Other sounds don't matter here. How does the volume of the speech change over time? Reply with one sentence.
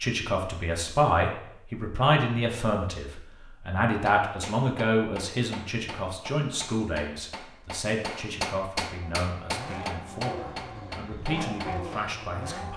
The volume of the speech goes down.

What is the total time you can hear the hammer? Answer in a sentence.
The hammer can be heard for 8 seconds in total.